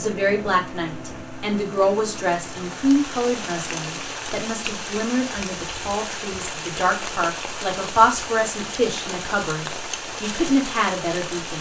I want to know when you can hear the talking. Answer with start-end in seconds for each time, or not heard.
0.0-11.5.